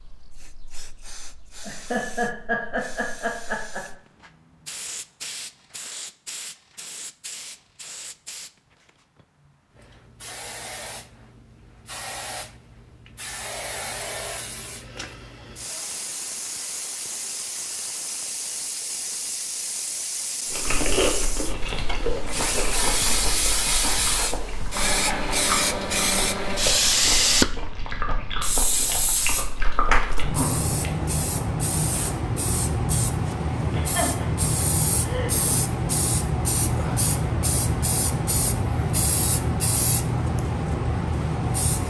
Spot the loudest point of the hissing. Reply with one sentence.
The loudest moment of the hissing is at 27 seconds.